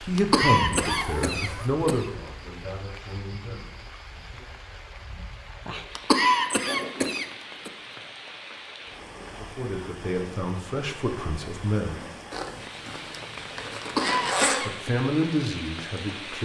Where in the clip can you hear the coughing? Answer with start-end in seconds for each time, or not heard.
0.1-2.0, 6.0-7.7, 13.8-14.9.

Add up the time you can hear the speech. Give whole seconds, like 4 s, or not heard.
9 s.